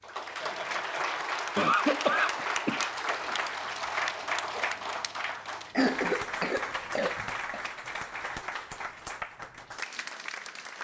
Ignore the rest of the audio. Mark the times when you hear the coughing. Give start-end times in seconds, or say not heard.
1.6-3.4, 5.7-7.7.